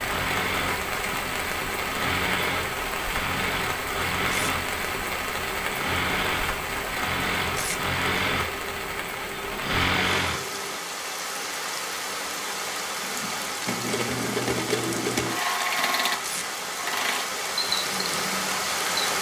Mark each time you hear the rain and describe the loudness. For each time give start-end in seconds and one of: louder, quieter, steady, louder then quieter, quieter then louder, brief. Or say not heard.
0.0-19.1 steady.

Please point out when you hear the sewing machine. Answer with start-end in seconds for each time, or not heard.
0.0-10.8, 13.0-19.1.